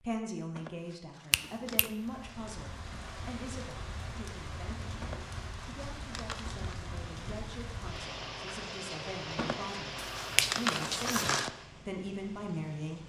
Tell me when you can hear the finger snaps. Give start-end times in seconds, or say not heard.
1.3-1.9, 9.9-11.3.